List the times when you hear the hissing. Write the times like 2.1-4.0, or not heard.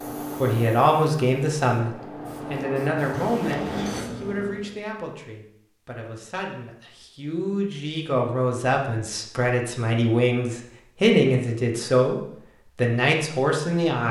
0.0-4.8.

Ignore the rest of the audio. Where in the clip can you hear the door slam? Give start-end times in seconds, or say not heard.
3.1-4.0.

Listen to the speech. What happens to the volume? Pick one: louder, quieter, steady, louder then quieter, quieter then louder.
quieter then louder.